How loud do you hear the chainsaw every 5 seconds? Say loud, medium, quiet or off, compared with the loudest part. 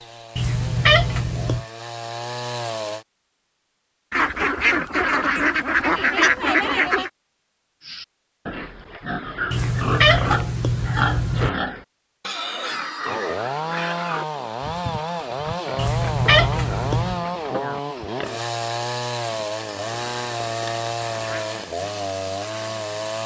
medium, off, loud, loud, loud.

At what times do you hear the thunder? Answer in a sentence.
You can't hear the thunder here.